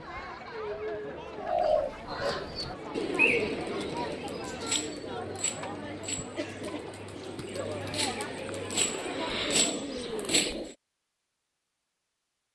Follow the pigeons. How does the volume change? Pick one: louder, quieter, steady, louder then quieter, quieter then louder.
quieter then louder.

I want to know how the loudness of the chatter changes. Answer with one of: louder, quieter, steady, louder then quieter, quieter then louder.
steady.